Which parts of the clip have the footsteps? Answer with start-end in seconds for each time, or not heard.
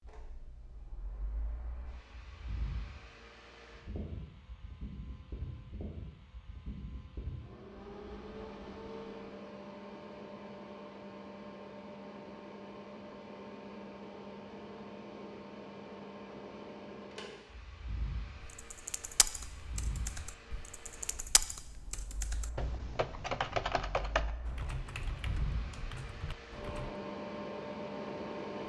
not heard.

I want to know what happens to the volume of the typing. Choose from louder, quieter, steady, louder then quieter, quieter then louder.
louder then quieter.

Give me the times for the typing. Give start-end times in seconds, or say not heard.
18.4-26.9.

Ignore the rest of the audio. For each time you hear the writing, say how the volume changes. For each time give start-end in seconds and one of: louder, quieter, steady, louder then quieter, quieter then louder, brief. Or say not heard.
not heard.